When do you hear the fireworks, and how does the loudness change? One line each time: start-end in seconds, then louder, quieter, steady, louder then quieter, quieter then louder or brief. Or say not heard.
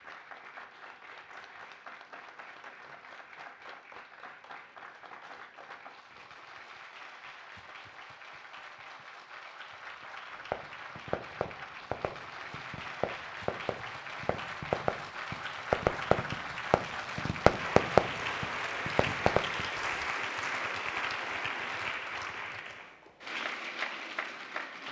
10.3-20.1 louder.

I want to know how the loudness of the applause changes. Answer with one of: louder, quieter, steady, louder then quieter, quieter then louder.
louder.